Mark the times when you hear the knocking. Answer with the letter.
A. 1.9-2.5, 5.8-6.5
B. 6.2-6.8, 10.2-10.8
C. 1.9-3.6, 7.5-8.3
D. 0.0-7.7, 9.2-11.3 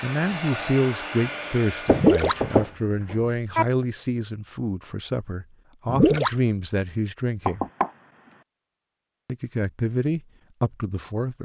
C.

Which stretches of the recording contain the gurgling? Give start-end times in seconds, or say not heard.
1.9-2.5, 5.8-6.5.